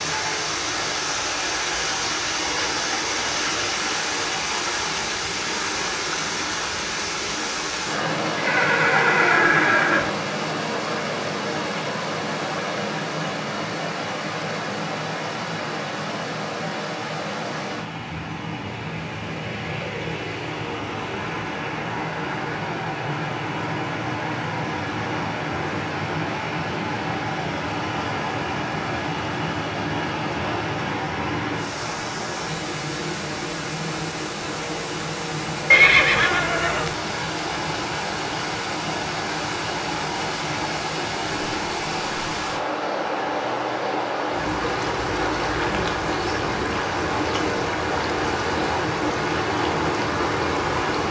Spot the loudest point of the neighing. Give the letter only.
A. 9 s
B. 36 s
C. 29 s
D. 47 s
B.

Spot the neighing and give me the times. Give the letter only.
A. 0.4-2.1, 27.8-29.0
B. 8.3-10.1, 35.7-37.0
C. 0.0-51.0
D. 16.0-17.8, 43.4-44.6
B.